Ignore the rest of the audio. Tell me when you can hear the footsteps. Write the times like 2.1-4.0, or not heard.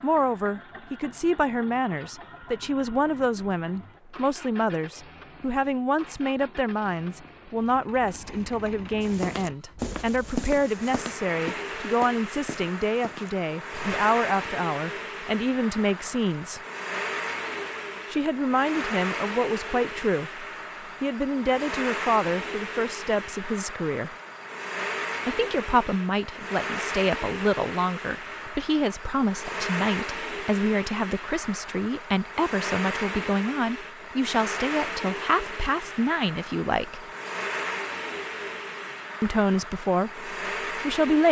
9.0-14.1.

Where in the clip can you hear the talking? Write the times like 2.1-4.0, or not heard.
0.0-16.6, 18.1-24.1, 25.2-37.0, 39.2-41.2.